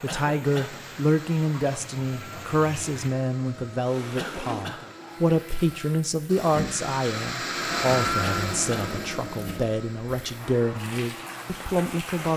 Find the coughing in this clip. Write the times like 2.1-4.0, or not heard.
0.1-0.8, 4.2-4.9, 8.4-8.9.